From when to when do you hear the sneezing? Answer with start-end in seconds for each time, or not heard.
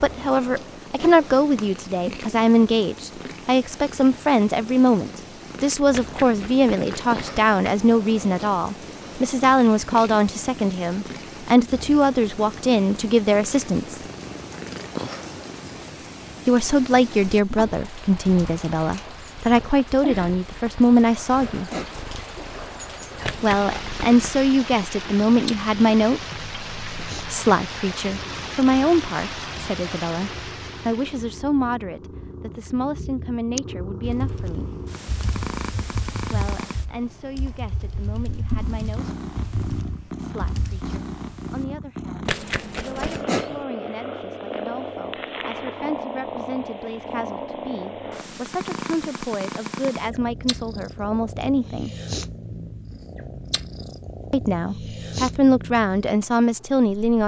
0.8-1.3, 21.5-22.1, 43.0-43.6.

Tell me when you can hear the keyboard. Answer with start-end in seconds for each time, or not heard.
33.5-40.9.